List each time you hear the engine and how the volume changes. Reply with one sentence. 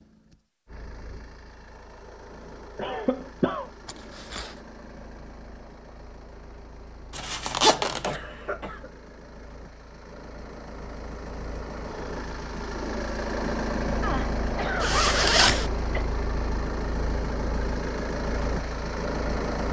The engine can be heard from 0.0 to 19.6 s, getting louder.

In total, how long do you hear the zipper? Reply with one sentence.
You can hear the zipper for 3 seconds altogether.